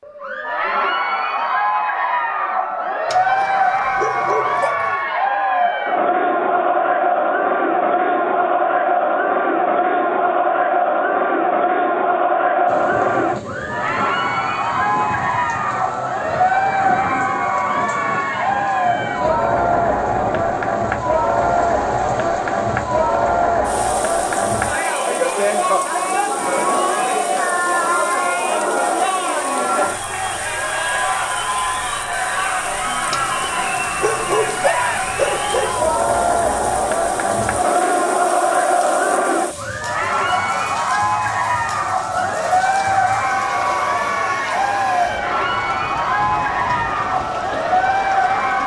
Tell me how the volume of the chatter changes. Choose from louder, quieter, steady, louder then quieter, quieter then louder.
steady.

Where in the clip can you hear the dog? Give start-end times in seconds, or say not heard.
3.0-5.0, 33.1-35.8.